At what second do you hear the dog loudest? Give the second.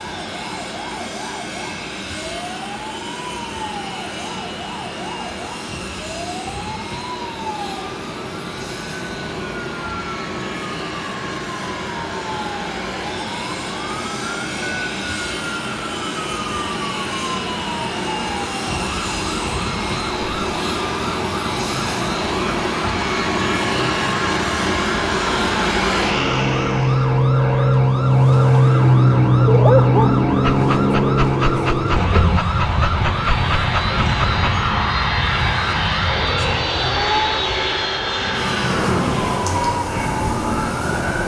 30 s.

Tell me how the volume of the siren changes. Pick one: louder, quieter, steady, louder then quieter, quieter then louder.
louder.